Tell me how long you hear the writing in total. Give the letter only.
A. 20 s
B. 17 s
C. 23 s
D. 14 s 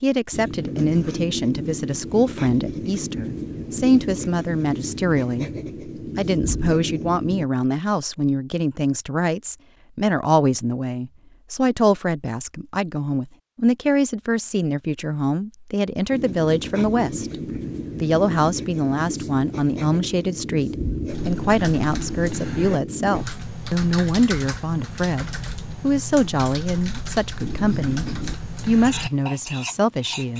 B.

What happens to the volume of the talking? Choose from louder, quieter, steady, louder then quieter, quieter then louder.
steady.